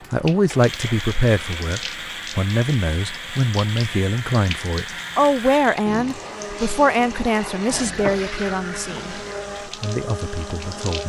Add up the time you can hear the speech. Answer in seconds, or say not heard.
11 s.